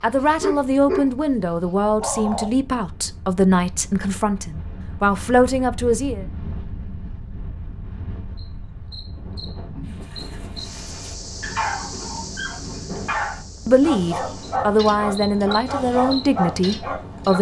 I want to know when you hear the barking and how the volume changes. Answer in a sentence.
The barking can be heard briefly from 0.0 to 1.1 s; briefly from 2.0 to 2.5 s; and from 9.8 to 17.3 s, getting louder.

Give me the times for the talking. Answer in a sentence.
You can hear the talking from 0.0 to 6.2 s and from 13.7 to 17.3 s.